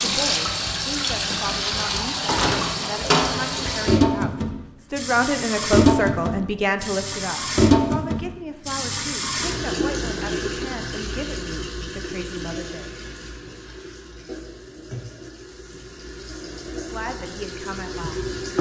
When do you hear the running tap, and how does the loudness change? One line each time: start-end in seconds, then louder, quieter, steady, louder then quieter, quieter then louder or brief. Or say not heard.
0.0-18.5 quieter.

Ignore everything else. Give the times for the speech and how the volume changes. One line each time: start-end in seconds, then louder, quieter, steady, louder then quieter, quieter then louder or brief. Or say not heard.
0.0-12.9 louder then quieter
16.6-18.4 brief.